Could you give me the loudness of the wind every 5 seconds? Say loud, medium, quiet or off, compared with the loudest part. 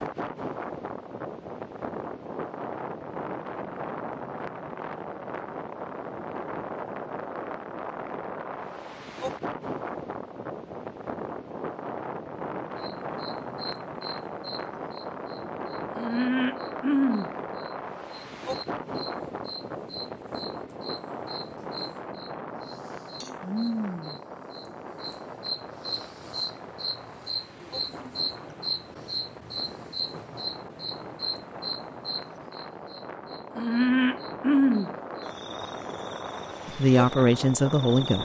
loud, loud, loud, loud, loud, medium, medium, loud.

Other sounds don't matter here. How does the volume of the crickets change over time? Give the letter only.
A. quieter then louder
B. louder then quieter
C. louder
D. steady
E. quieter
A.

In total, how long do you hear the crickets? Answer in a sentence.
You can hear the crickets for 25 seconds altogether.